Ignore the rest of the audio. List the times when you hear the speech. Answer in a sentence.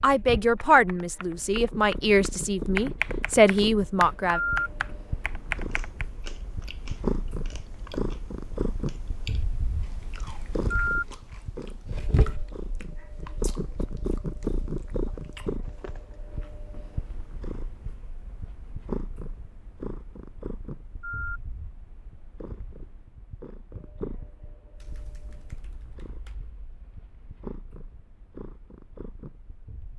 You can hear the speech from 0.0 to 4.4 s.